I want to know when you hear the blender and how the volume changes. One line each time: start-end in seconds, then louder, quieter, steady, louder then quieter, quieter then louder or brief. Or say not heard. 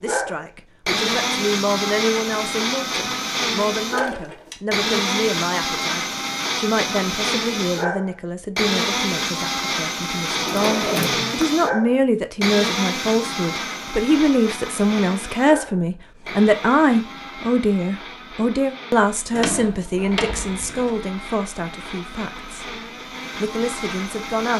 0.0-24.5 quieter.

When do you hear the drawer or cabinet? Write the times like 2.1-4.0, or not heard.
4.0-4.6, 10.3-11.4, 19.3-20.9.